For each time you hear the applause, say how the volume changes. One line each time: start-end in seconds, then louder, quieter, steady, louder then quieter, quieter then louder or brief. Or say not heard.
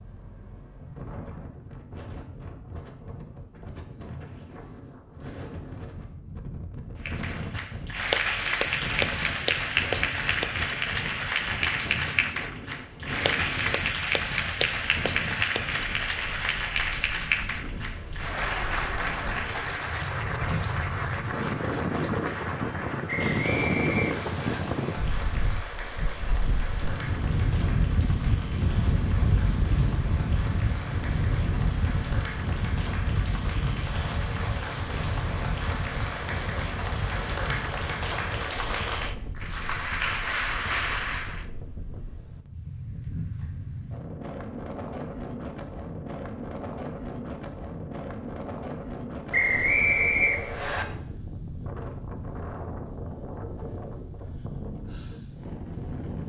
7.0-41.5 quieter then louder.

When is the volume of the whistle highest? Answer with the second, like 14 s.
50 s.